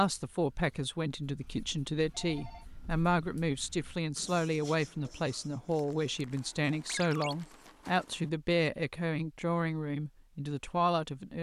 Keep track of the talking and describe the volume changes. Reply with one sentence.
The loudness of the talking stays about the same.